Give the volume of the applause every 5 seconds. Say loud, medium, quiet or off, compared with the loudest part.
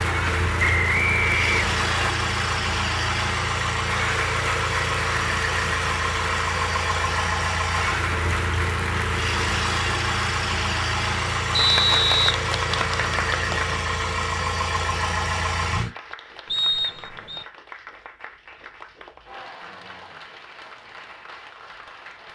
loud, loud, loud, quiet, quiet.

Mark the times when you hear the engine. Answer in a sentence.
You can hear the engine from 0.0 to 15.9 s.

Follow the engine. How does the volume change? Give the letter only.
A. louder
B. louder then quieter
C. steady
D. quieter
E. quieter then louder
C.